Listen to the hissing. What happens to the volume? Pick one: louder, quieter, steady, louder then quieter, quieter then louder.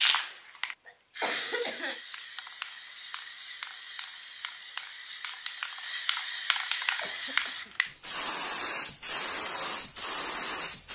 louder.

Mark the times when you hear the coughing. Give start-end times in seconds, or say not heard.
0.8-2.0, 7.0-7.8.